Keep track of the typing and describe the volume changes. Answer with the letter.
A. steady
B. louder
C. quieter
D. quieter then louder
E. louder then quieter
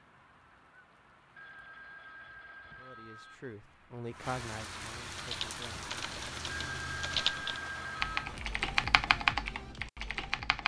B.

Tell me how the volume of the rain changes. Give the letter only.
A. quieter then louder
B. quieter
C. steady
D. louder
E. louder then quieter
D.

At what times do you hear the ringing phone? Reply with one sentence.
The ringing phone can be heard from 1.4 to 3.4 s and from 6.5 to 8.3 s.